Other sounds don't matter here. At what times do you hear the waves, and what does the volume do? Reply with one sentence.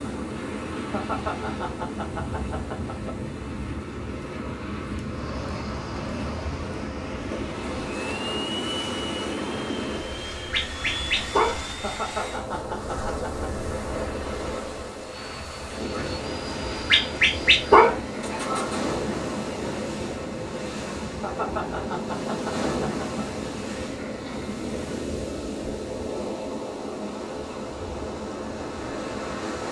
You can hear the waves from 0.0 to 29.6 s, at a steady volume.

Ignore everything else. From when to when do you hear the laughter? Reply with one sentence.
You can hear the laughter from 0.9 to 3.1 s, from 11.8 to 13.5 s and from 21.2 to 23.2 s.